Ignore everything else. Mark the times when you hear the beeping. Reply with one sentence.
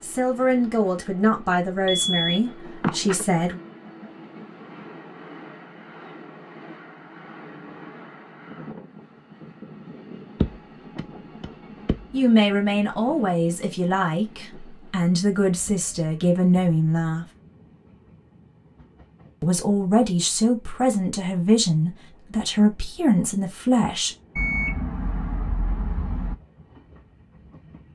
The beeping can be heard from 2.0 to 3.2 s, from 10.4 to 11.9 s and from 24.4 to 26.4 s.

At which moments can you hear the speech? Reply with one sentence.
The speech can be heard from 0.0 to 3.6 s, from 12.1 to 17.2 s and from 19.4 to 24.1 s.